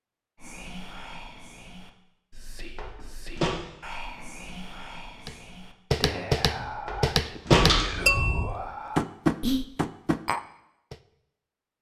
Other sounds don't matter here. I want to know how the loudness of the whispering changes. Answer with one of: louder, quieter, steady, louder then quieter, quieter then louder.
louder.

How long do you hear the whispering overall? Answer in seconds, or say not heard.
9 s.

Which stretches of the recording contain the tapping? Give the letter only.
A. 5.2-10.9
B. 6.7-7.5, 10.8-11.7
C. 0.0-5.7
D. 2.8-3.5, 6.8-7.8
A.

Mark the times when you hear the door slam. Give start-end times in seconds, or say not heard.
2.8-3.5, 6.8-7.8.